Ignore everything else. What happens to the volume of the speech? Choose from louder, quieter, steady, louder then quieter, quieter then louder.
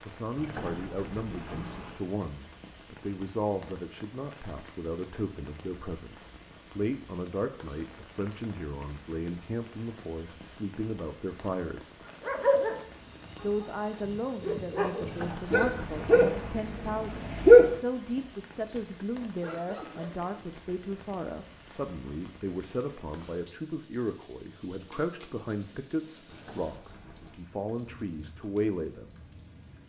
steady.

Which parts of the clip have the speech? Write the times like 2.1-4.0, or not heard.
0.0-12.1, 13.4-29.1.